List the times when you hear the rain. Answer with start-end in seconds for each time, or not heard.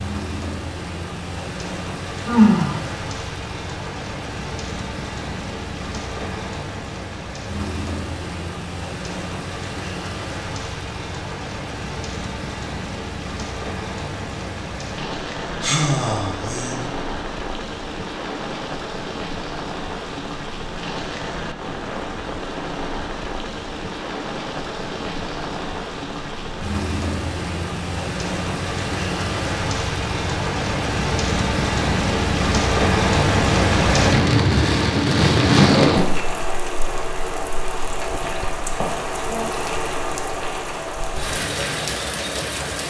0.0-42.8.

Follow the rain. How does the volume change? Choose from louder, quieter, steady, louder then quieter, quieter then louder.
louder.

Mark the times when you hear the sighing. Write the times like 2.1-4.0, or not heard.
2.2-2.8, 15.6-16.8, 38.8-39.5.